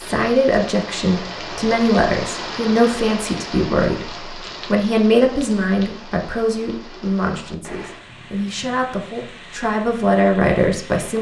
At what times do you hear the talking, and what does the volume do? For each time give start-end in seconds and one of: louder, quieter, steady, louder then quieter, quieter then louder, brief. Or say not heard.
0.0-11.1 quieter then louder.